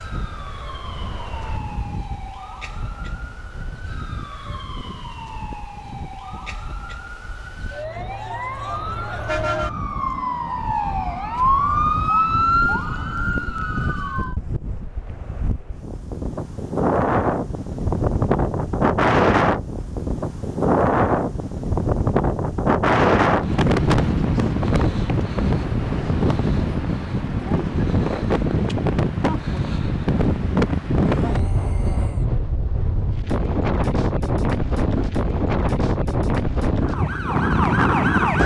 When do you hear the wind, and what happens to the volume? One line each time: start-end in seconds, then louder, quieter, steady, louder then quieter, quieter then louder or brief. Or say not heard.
0.0-38.4 louder.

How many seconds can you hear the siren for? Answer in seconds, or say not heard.
16 s.